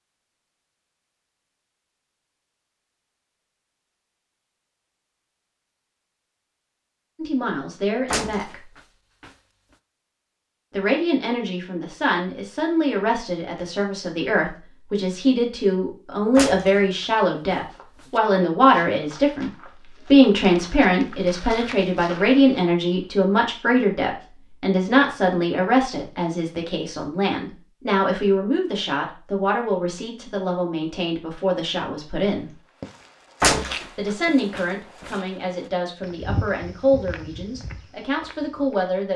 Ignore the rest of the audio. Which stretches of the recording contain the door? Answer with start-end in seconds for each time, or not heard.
8.1-9.3, 16.4-18.2, 33.4-35.1.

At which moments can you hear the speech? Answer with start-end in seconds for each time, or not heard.
7.2-8.7, 10.7-32.6, 34.0-39.1.